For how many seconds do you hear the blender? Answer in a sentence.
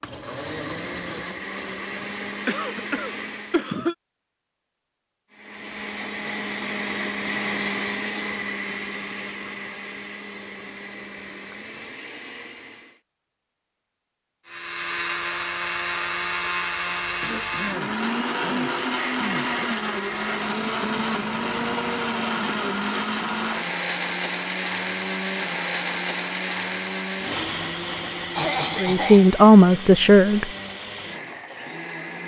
You can hear the blender for 29 seconds altogether.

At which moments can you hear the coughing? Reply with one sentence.
The coughing can be heard from 2.5 to 4.0 s, from 17.2 to 19.7 s and from 28.4 to 29.2 s.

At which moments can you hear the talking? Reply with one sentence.
The talking can be heard from 28.8 to 30.5 s.